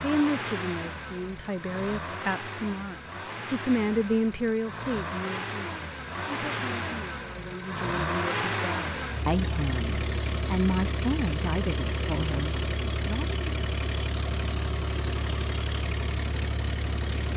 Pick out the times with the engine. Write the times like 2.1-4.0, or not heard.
0.0-17.3.